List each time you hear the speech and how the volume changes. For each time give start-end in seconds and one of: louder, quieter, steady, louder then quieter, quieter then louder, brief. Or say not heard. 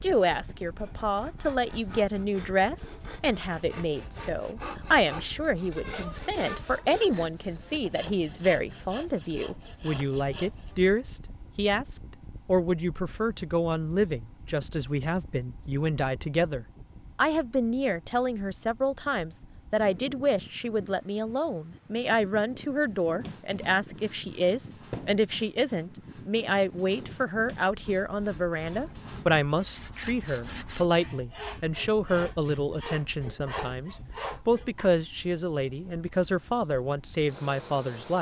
0.0-38.1 steady.